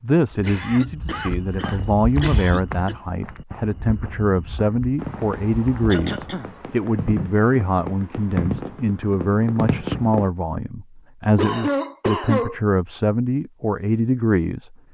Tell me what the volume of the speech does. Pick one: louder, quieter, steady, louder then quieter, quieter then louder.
steady.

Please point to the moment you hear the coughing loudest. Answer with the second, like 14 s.
12 s.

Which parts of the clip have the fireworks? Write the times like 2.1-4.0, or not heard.
5.0-10.3.